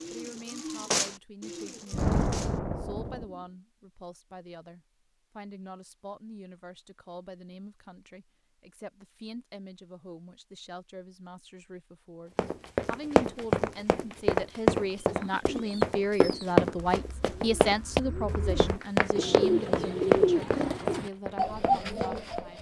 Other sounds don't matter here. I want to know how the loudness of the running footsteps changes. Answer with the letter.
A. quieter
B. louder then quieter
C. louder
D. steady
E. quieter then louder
A.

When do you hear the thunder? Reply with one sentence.
You can hear the thunder from 1.9 to 3.2 s.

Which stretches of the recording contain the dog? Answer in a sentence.
The dog can't be heard in this clip.